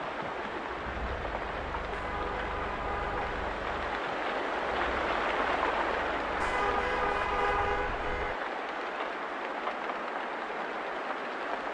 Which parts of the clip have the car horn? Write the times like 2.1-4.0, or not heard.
1.9-3.4, 6.4-8.3.